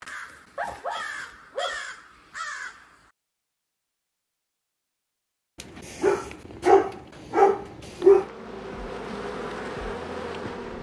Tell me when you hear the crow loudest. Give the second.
2 s.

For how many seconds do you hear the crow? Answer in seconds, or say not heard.
3 s.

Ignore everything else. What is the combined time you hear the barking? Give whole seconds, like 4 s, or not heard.
4 s.